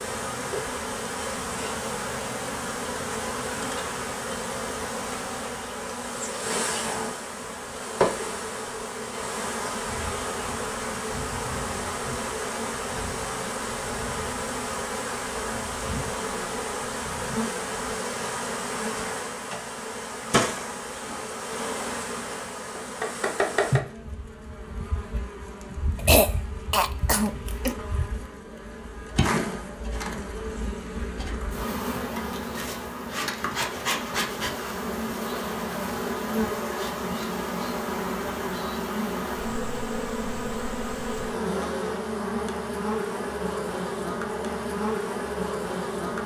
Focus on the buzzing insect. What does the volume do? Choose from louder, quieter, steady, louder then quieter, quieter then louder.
steady.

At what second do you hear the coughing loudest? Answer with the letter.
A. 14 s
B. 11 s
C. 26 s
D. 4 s
C.